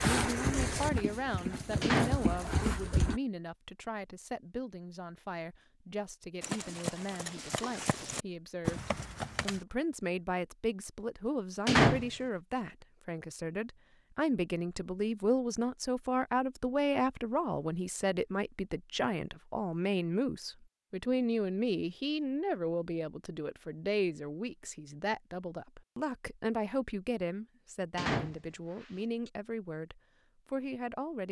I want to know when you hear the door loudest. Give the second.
12 s.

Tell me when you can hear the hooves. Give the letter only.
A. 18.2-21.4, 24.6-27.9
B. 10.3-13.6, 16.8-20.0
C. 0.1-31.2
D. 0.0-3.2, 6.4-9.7
D.